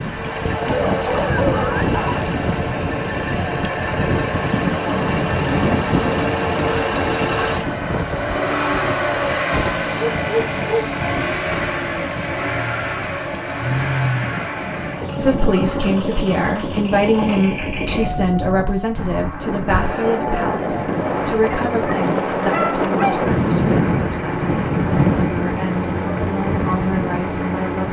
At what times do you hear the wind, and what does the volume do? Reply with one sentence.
The wind can be heard from 0.0 to 27.8 s, getting quieter then louder.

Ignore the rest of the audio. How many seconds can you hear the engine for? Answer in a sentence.
You can hear the engine for 28 seconds altogether.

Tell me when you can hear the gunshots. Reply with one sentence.
You can't hear the gunshots here.